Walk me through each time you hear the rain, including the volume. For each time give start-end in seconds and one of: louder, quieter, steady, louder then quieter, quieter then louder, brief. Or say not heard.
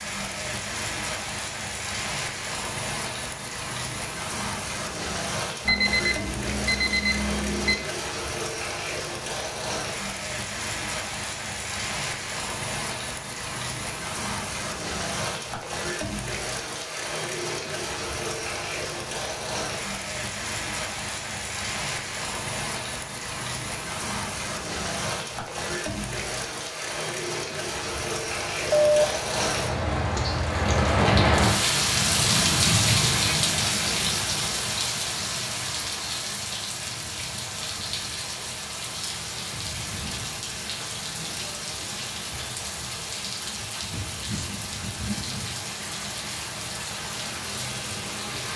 0.0-48.5 louder then quieter.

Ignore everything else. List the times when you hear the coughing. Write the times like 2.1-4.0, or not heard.
not heard.